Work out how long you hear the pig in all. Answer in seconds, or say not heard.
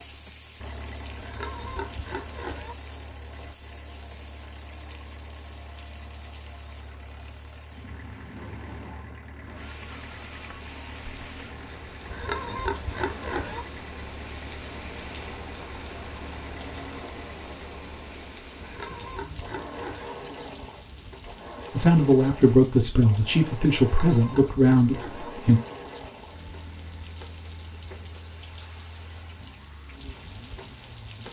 6 s.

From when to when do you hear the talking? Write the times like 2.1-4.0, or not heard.
21.7-25.6.